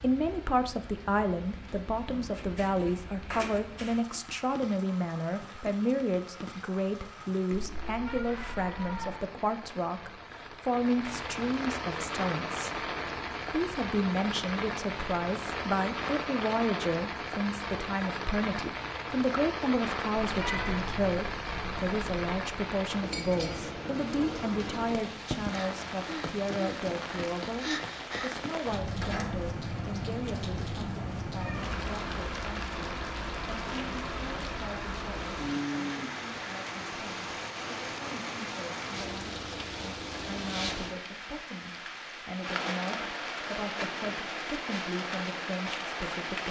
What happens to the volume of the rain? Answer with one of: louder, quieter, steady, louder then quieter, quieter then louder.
louder.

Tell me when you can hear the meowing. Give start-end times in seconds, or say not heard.
7.5-9.2, 20.2-22.4, 31.4-32.3.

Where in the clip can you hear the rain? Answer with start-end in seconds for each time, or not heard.
0.0-46.4.